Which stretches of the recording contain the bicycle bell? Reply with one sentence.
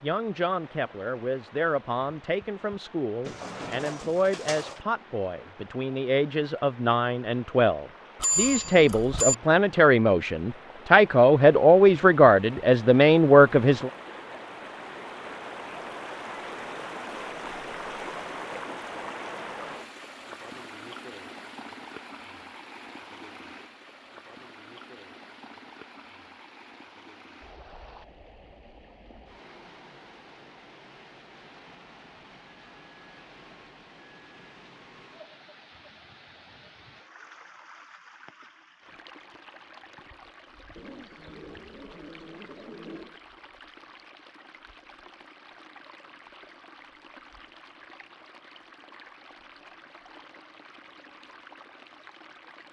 The bicycle bell can be heard from 8.2 to 9.3 s.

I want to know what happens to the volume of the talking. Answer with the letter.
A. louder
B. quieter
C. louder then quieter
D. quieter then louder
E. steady
A.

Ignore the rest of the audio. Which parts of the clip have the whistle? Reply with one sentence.
The whistle can't be heard in this clip.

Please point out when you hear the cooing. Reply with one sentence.
You can hear the cooing from 3.2 to 4.8 s and from 40.8 to 43.2 s.